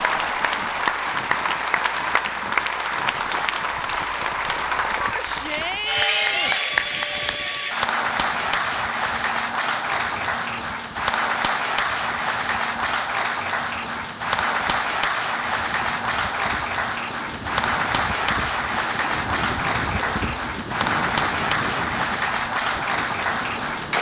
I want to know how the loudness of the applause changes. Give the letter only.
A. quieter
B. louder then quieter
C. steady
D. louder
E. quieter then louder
C.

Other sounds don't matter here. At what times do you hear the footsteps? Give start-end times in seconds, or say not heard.
not heard.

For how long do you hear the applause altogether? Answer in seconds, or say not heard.
24 s.